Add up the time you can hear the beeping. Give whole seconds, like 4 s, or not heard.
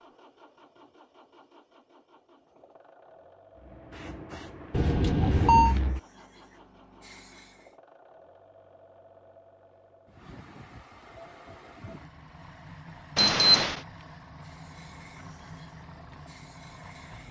2 s.